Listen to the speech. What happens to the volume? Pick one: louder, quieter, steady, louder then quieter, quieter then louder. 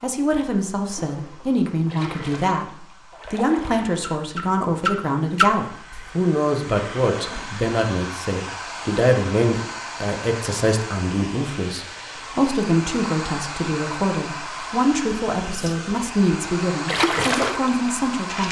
steady.